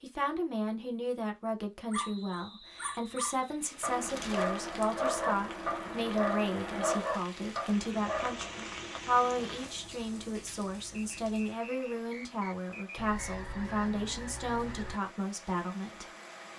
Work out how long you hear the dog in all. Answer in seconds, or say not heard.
7 s.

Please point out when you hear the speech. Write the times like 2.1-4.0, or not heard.
0.0-16.1.